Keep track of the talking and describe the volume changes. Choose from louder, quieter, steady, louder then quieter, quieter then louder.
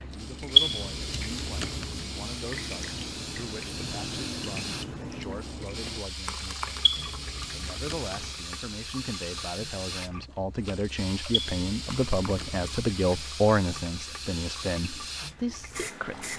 louder.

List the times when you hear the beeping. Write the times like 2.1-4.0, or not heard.
0.6-2.0, 6.8-8.3, 11.3-12.8.